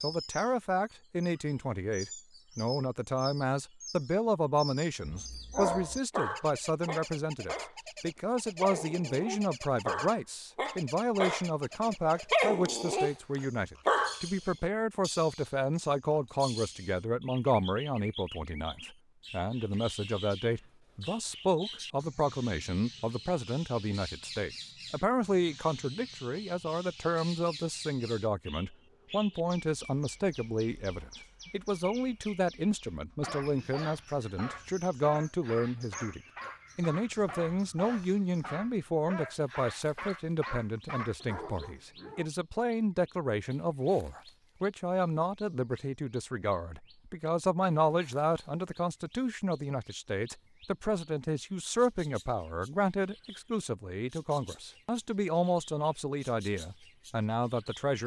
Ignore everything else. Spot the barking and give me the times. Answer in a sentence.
You can hear the barking from 5.0 to 14.2 s and from 33.1 to 42.2 s.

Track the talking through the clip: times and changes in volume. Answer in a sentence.
The talking can be heard from 0.0 to 58.0 s, at a steady volume.